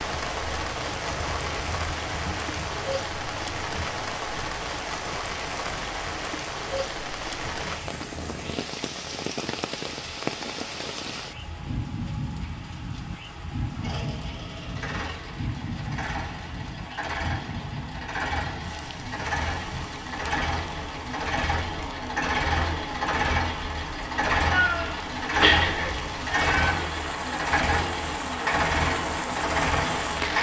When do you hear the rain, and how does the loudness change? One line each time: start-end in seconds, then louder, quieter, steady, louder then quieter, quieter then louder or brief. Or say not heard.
0.0-30.3 quieter then louder.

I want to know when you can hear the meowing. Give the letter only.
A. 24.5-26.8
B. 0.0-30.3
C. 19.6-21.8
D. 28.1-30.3
A.